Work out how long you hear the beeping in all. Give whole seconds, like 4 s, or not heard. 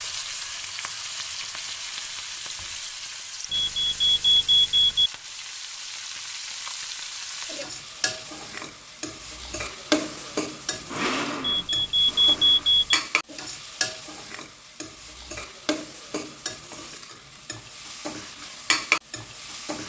3 s.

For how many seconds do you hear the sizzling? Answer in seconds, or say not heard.
20 s.